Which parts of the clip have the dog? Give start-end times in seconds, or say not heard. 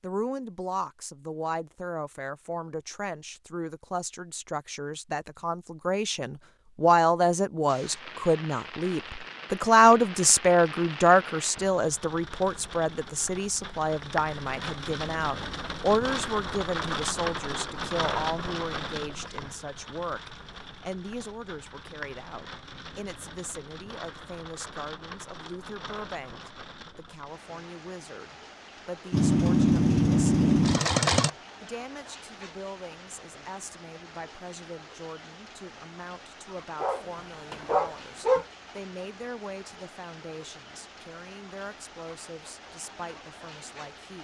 36.8-38.5.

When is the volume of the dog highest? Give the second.
38 s.